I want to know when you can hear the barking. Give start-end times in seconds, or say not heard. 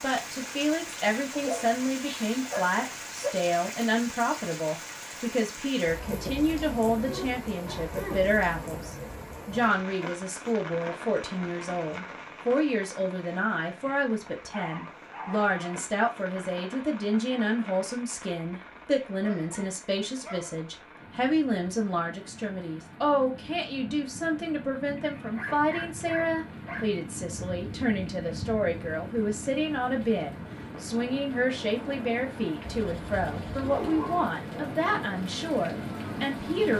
1.3-3.3, 7.0-8.2, 14.3-15.8, 19.2-20.6, 25.1-26.9, 32.6-34.2.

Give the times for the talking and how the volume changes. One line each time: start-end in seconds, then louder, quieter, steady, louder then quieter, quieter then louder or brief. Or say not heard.
0.0-36.7 steady.